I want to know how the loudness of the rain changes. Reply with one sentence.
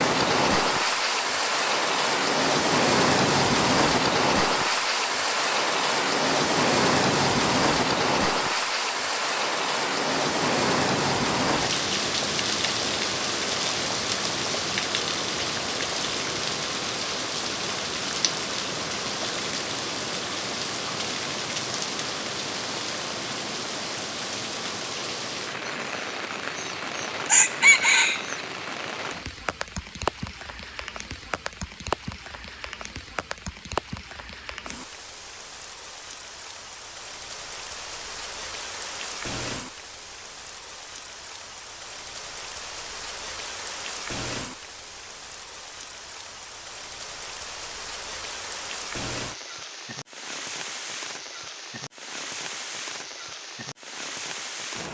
The volume of the rain goes down.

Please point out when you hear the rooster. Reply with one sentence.
You can hear the rooster from 25.6 to 28.4 s.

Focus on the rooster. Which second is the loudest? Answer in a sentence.
The volume of the rooster peaks at 28 seconds.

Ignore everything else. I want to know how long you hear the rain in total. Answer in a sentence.
You can hear the rain for 55 seconds altogether.